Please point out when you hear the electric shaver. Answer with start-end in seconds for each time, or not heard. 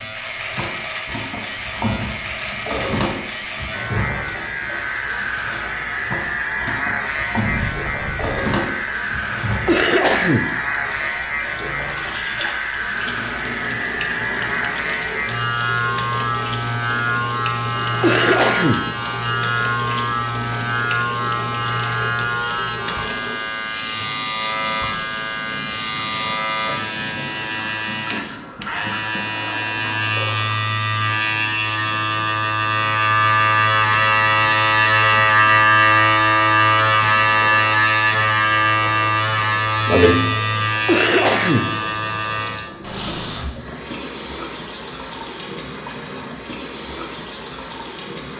0.0-42.7.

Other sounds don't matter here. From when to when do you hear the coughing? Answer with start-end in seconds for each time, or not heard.
9.7-10.5, 18.0-18.9, 40.9-41.7.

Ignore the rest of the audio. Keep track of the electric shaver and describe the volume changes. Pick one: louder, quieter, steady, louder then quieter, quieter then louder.
louder.